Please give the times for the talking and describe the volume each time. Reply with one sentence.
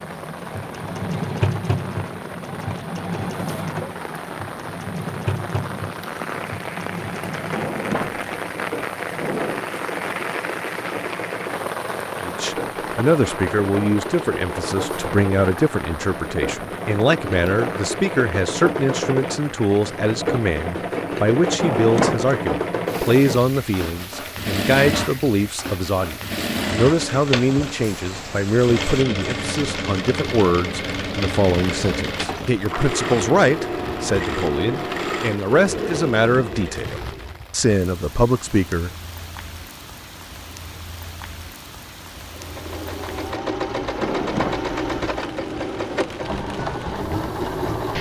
You can hear the talking from 12.2 to 38.9 s, at a steady volume.